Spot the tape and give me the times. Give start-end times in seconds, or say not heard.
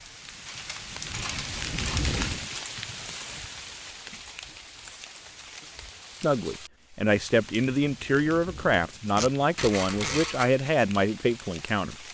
9.2-10.2.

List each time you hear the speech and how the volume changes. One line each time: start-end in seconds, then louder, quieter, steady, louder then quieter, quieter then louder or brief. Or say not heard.
6.2-11.9 steady.